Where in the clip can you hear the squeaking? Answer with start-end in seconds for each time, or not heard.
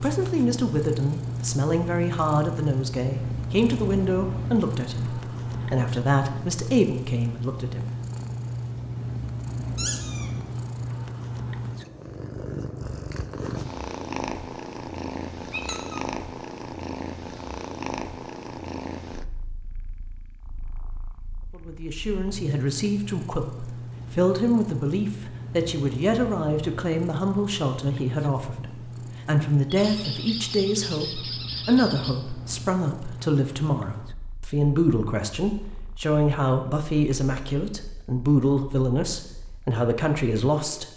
9.8-10.3, 15.5-16.0, 29.6-32.1.